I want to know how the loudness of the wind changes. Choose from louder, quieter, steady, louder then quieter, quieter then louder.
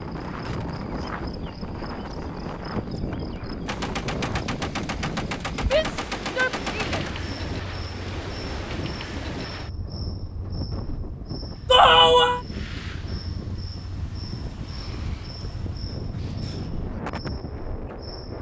steady.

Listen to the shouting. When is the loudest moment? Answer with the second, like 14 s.
12 s.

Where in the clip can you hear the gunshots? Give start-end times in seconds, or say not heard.
3.6-7.2.